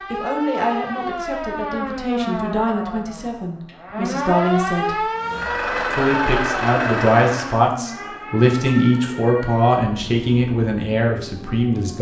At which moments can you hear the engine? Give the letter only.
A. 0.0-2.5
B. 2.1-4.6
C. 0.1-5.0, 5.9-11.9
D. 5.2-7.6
D.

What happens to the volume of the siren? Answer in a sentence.
The volume of the siren goes down.